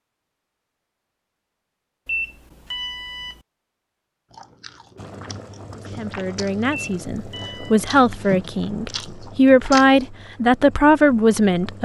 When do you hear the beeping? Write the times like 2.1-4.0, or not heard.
2.0-3.4, 6.7-7.8.